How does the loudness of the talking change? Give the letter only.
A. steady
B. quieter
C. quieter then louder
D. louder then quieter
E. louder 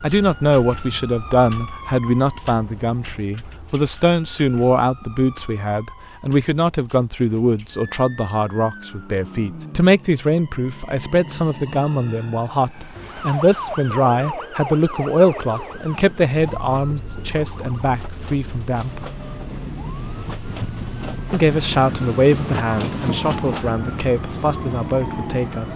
A.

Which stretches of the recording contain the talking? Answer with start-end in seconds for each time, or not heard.
0.0-19.1, 21.3-25.7.